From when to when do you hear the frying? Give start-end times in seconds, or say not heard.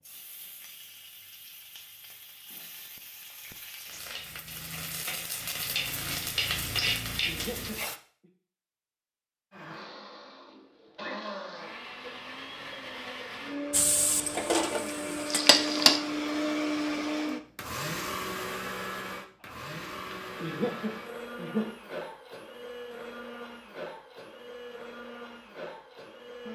0.0-8.0, 13.7-16.0.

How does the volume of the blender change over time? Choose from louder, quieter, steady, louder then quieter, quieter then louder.
louder then quieter.